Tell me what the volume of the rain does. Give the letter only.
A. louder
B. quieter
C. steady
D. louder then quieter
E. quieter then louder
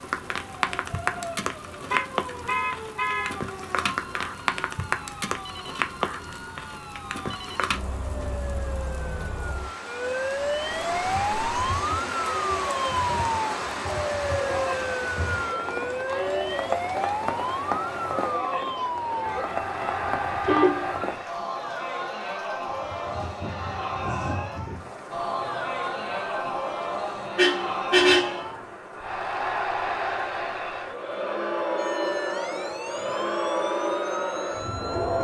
B.